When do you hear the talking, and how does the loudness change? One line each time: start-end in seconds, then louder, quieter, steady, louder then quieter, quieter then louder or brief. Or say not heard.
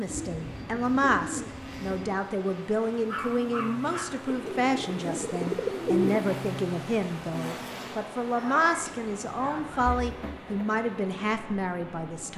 0.0-12.3 steady.